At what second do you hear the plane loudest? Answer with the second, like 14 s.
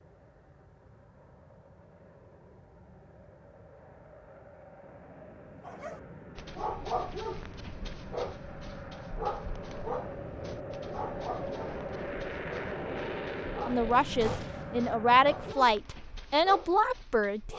13 s.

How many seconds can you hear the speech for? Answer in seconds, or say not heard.
4 s.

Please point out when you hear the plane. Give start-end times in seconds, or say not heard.
0.0-15.6.